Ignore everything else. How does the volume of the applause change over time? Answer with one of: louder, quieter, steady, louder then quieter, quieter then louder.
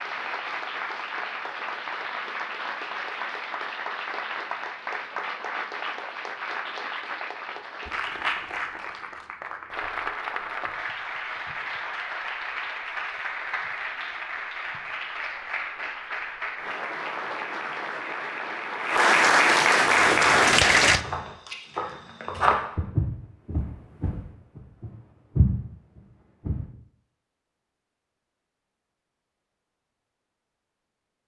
louder.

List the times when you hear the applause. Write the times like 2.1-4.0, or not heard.
0.0-21.0.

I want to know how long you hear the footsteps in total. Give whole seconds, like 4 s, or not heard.
7 s.